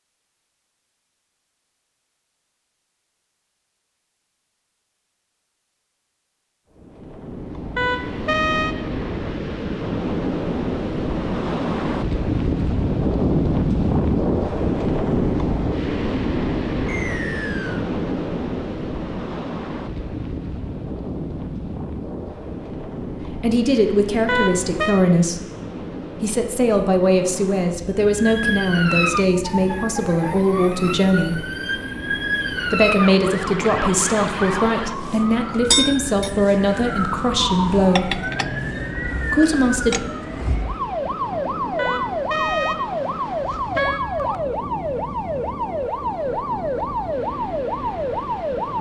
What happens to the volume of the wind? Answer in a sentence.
The loudness of the wind goes down.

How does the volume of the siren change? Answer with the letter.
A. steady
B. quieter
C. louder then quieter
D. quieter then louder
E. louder
A.